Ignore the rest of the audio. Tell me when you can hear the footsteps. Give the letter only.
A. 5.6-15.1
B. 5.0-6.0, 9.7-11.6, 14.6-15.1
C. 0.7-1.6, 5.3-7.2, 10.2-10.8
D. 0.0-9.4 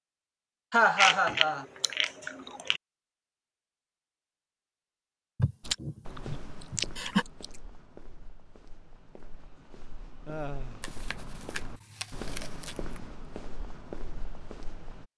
A.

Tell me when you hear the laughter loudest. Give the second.
1 s.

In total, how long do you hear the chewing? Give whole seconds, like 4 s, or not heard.
6 s.